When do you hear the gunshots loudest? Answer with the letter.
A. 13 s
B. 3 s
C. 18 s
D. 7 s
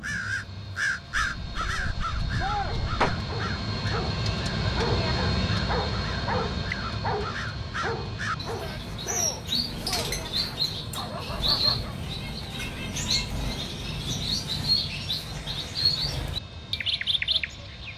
B.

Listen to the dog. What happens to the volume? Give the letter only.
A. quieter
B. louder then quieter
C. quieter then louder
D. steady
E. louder
B.